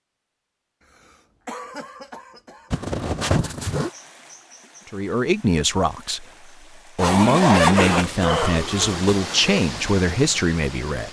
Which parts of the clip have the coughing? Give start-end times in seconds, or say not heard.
0.9-2.7, 7.6-9.6.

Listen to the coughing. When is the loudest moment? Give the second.
8 s.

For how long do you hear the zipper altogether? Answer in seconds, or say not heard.
3 s.